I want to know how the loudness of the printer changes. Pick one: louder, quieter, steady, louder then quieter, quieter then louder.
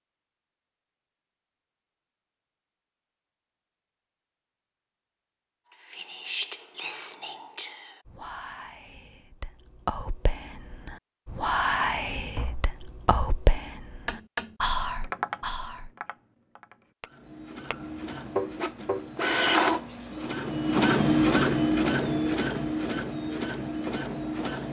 louder then quieter.